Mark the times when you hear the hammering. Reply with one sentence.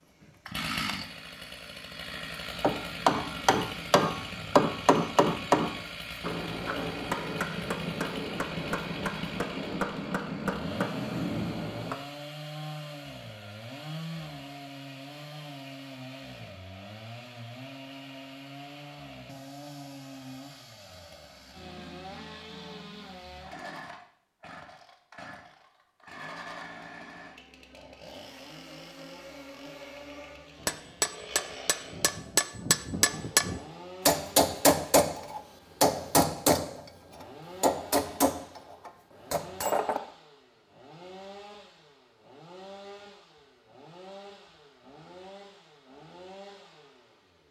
You can hear the hammering from 2.6 to 11.9 s and from 30.6 to 40.0 s.